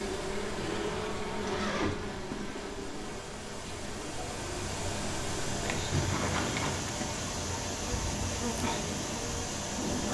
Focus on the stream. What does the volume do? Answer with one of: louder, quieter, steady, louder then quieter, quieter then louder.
louder.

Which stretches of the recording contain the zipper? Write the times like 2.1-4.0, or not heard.
0.6-2.3, 5.9-6.8.